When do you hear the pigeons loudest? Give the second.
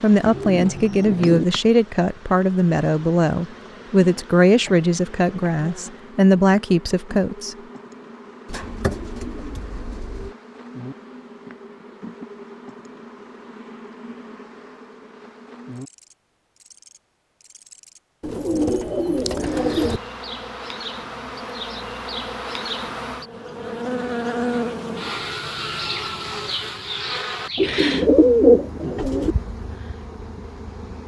28 s.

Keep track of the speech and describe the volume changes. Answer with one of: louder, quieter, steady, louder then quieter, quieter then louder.
steady.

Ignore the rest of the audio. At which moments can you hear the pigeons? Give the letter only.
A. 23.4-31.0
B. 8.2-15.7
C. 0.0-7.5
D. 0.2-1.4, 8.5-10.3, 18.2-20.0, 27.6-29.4
D.